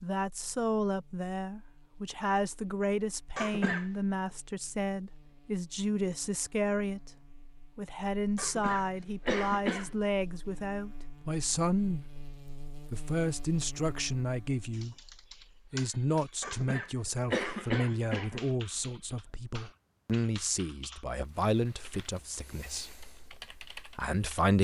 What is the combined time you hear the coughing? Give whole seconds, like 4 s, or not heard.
4 s.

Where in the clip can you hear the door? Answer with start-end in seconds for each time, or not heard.
not heard.